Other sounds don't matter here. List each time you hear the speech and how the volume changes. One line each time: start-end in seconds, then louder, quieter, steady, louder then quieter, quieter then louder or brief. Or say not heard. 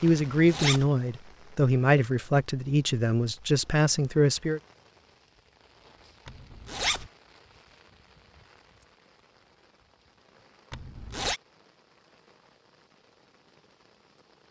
0.0-4.6 steady.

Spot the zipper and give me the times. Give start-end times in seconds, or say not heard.
0.3-0.9, 6.2-7.1, 10.7-11.4.